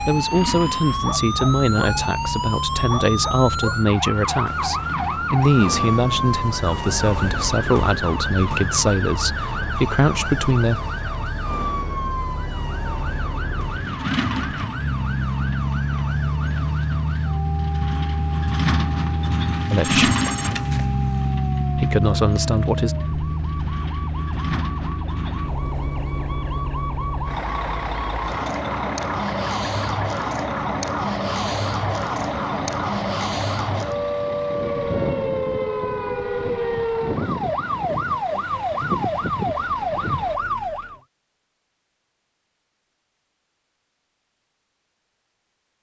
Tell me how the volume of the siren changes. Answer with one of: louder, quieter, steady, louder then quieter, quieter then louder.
quieter then louder.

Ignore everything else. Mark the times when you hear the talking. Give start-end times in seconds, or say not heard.
0.0-10.8, 19.7-20.1, 21.8-22.9.